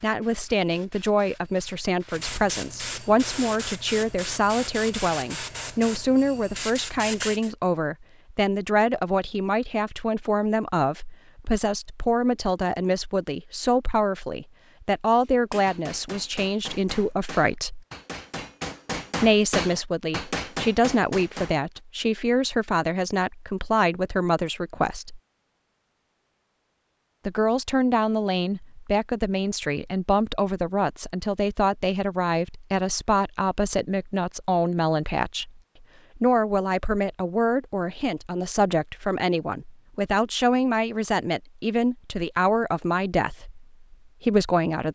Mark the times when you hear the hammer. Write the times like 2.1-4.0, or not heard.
15.2-21.8.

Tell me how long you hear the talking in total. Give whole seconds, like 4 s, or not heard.
41 s.